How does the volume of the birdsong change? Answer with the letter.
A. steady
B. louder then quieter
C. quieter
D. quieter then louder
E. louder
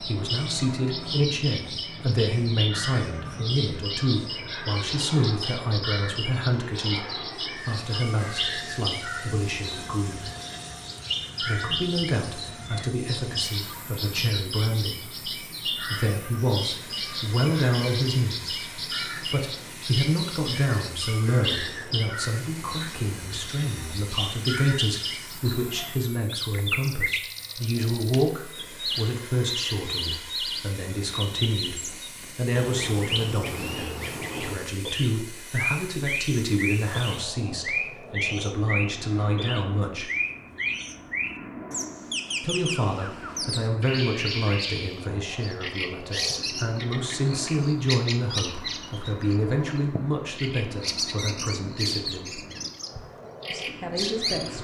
A.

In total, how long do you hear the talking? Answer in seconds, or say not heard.
50 s.